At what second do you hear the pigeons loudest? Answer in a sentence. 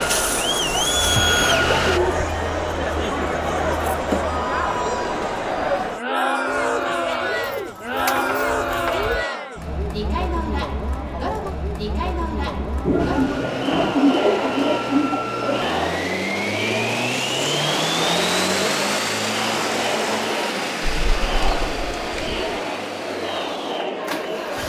The loudest moment of the pigeons is at 14 seconds.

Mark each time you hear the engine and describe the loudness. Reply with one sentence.
The engine can be heard briefly from 0.0 to 2.0 s; and from 12.9 to 24.6 s, getting louder then quieter.